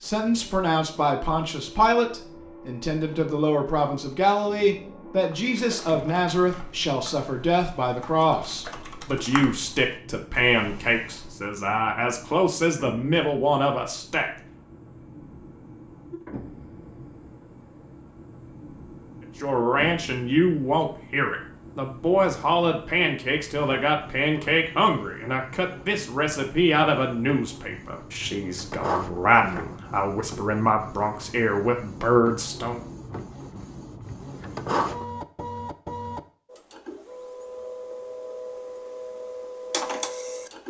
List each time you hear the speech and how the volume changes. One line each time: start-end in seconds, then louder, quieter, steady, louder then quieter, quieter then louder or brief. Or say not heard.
0.0-14.3 steady
19.4-32.8 steady.